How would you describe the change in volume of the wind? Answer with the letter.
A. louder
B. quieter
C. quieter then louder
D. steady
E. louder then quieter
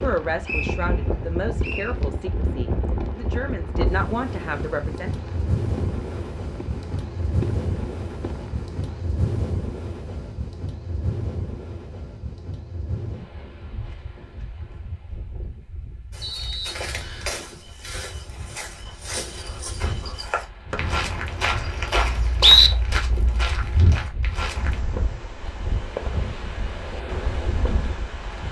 C.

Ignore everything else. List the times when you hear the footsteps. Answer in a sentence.
The footsteps can be heard from 16.1 to 24.8 s.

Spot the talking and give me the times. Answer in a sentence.
You can hear the talking from 0.0 to 5.2 s.